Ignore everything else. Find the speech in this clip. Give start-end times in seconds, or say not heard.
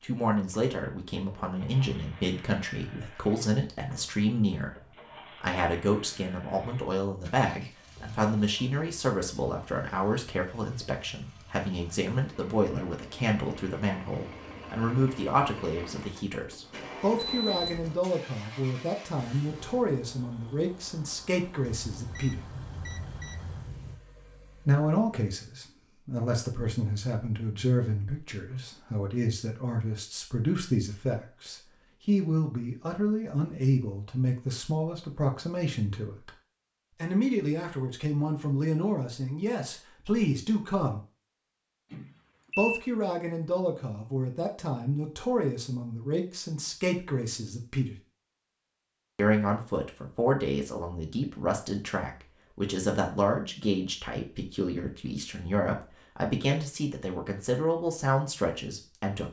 0.0-22.4, 24.6-36.3, 37.0-41.0, 42.5-48.0, 49.1-59.2.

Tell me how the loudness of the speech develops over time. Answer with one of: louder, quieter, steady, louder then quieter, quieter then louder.
steady.